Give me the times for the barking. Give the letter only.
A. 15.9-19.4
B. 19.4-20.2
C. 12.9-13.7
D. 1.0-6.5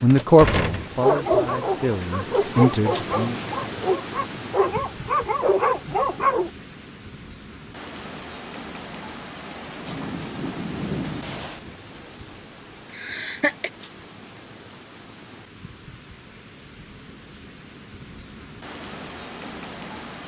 D.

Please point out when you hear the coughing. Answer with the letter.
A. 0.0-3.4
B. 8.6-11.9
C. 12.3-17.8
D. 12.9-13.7
D.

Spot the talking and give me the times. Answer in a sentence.
You can hear the talking from 0.0 to 3.4 s.